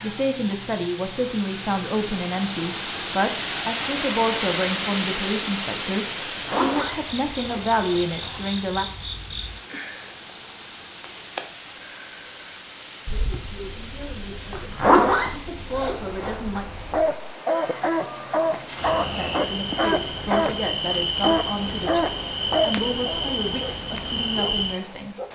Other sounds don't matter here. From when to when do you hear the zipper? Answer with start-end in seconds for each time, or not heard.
6.2-8.4, 14.5-16.6.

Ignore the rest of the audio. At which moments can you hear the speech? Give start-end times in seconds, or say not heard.
0.0-8.8, 13.1-16.6, 19.1-25.1.